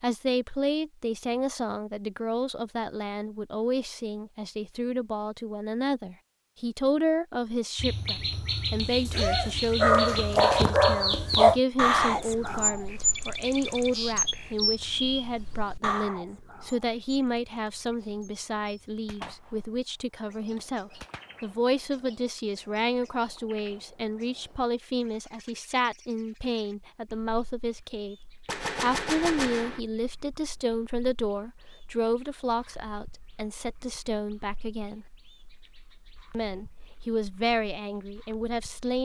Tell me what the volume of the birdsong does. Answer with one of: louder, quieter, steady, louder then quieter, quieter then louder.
quieter.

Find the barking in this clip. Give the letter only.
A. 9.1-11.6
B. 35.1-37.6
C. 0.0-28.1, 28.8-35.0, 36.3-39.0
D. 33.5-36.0
A.